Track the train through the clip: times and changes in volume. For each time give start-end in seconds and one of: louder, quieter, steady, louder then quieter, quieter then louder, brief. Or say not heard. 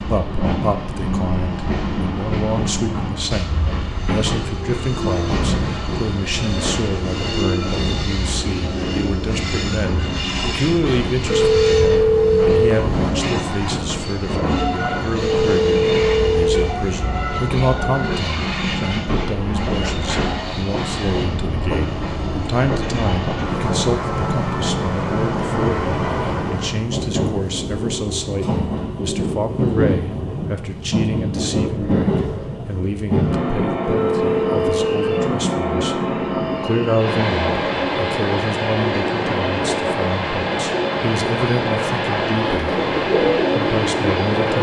0.0-44.5 steady.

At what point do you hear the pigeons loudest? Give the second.
43 s.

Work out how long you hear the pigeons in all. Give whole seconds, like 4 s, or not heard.
2 s.